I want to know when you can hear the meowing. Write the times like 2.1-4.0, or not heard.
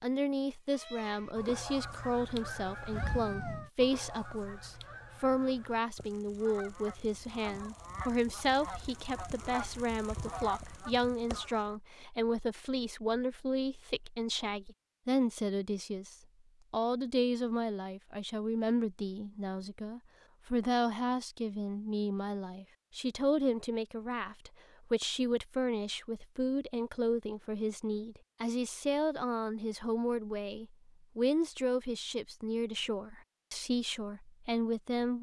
2.9-3.7.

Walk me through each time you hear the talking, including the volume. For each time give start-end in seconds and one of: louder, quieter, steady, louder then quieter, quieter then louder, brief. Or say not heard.
0.0-35.1 steady.